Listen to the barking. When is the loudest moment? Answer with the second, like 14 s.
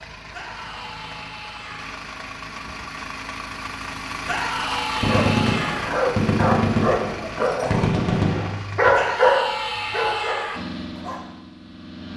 9 s.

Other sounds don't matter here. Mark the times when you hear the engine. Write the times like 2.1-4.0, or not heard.
0.0-9.0, 10.6-12.1.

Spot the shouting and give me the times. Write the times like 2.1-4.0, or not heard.
0.3-1.9, 4.2-5.9, 8.9-10.6.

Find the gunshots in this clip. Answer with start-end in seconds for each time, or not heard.
5.0-8.6.